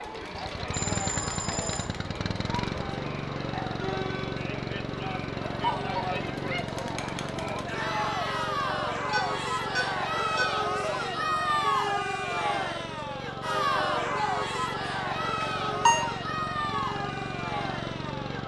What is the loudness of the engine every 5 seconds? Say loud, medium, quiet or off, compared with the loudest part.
loud, loud, medium, loud.